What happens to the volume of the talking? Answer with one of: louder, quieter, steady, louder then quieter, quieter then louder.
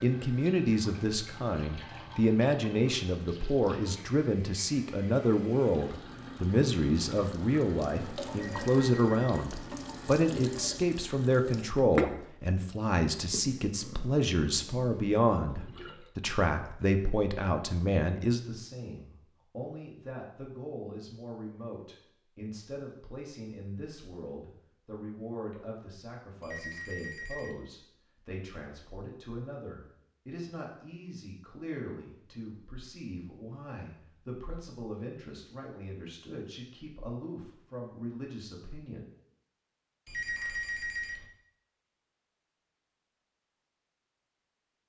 quieter.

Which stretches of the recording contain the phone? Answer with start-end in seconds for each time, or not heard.
8.4-9.4, 26.4-27.6, 40.0-41.2.